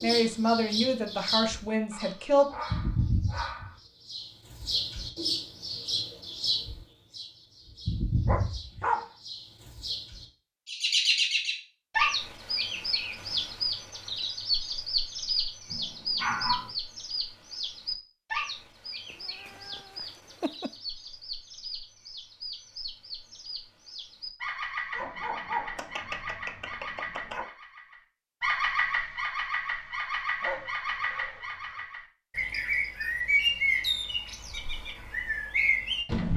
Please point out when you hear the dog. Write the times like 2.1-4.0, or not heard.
1.9-3.8, 8.2-9.1, 15.7-16.7, 24.9-27.4, 30.4-31.9.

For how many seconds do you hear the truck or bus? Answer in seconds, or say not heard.
not heard.